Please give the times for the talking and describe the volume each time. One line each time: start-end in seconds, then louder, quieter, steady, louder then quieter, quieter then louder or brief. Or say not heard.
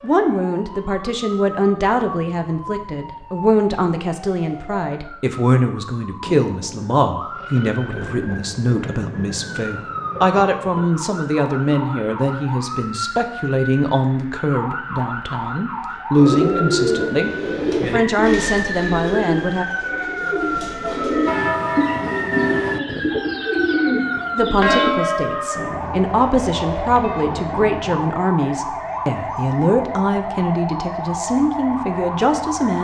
0.0-19.6 steady
24.4-32.7 steady.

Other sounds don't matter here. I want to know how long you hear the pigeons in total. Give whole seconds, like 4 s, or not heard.
9 s.